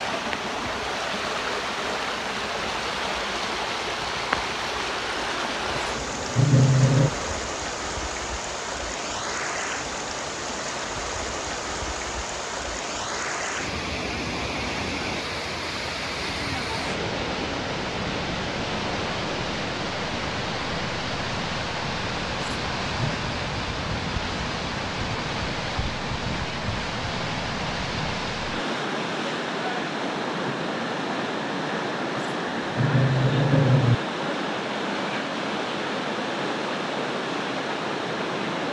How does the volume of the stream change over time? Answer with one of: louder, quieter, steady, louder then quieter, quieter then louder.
steady.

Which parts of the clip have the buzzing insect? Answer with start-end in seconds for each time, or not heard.
0.0-7.5.